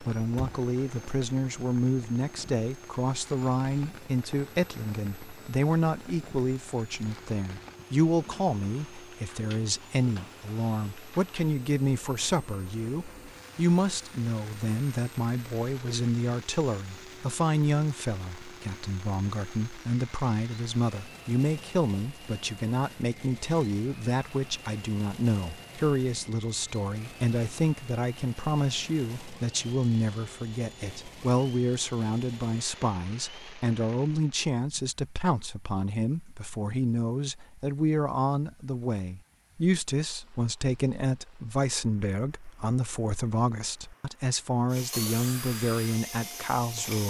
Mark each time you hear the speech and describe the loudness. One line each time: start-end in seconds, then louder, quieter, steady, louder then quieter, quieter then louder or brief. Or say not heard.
0.0-47.0 steady.